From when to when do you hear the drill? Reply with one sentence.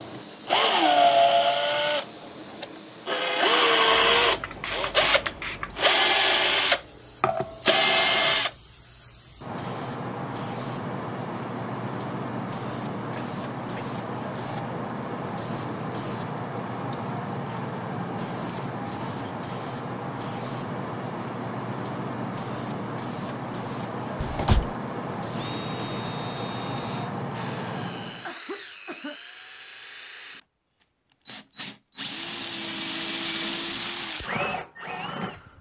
The drill can be heard from 0.0 to 8.5 s and from 25.2 to 35.5 s.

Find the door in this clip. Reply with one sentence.
The door can be heard from 24.2 to 24.7 s.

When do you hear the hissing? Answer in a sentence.
The hissing can be heard from 0.0 to 28.4 s.